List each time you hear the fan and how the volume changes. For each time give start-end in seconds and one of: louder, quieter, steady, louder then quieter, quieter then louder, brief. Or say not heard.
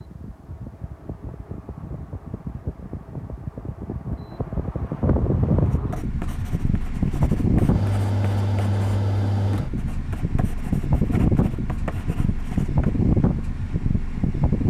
0.0-14.6 louder.